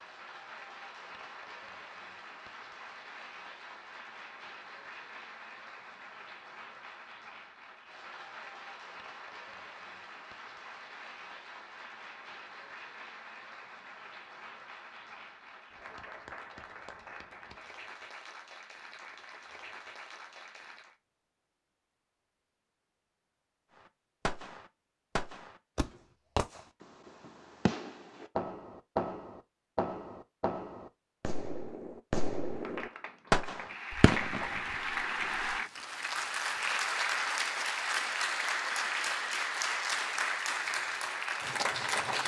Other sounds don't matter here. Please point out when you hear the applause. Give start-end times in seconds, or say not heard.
0.0-20.9, 32.5-42.2.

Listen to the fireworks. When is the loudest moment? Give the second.
33 s.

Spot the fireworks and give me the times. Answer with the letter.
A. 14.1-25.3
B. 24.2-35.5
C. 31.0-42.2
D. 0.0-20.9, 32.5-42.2
B.